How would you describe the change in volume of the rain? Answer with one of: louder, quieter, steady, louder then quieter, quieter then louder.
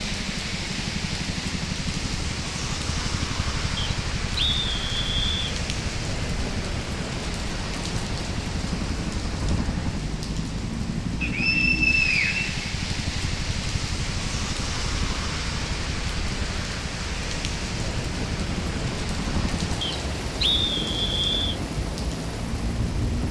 steady.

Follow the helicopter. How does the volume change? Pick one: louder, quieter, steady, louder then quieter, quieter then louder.
steady.